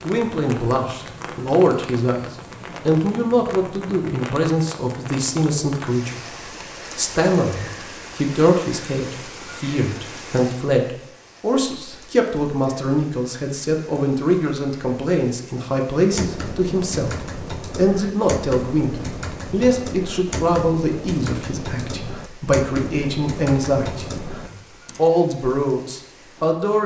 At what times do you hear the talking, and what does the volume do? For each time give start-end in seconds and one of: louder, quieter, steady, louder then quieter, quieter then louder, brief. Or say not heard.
0.0-26.8 steady.